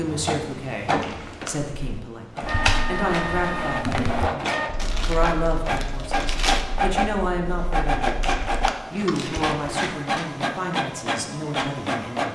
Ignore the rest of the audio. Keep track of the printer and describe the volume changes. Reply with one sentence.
The loudness of the printer stays about the same.